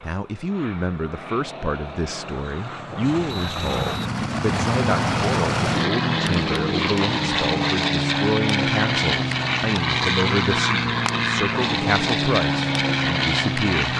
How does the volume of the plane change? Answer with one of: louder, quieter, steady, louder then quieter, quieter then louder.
louder.